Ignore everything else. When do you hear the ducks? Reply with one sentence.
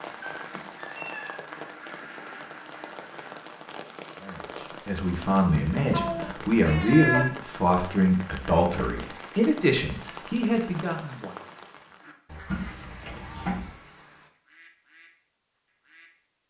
You can hear the ducks from 0.0 to 3.5 s and from 12.0 to 16.1 s.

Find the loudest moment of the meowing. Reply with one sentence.
The loudest moment of the meowing is at 7 seconds.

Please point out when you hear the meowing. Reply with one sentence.
You can hear the meowing from 0.2 to 1.4 s, from 5.9 to 7.2 s and from 12.5 to 13.8 s.